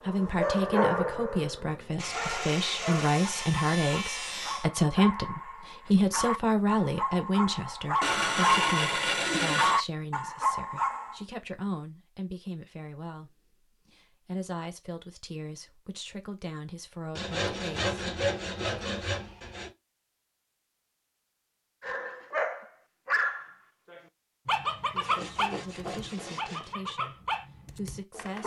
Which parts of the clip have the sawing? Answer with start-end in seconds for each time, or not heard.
1.9-4.7, 8.0-9.8, 17.1-19.7, 25.0-26.8.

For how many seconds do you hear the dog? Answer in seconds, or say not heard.
18 s.